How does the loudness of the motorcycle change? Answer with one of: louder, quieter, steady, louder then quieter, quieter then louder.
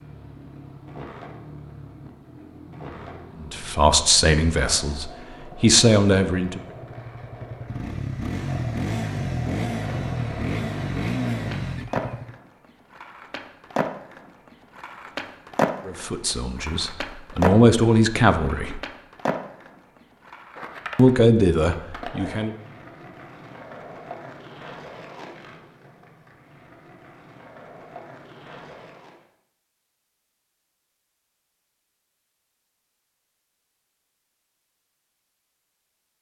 louder.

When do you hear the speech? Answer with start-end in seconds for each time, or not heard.
3.4-6.6, 15.8-18.8, 20.9-22.5.